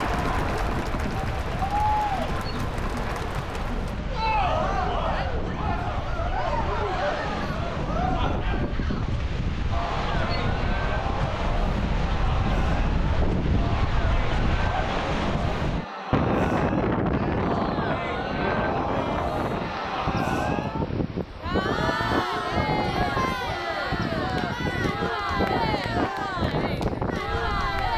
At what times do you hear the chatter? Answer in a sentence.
The chatter can be heard from 0.0 to 27.9 s.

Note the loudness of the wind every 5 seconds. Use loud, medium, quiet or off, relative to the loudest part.
medium, medium, loud, loud, loud, loud.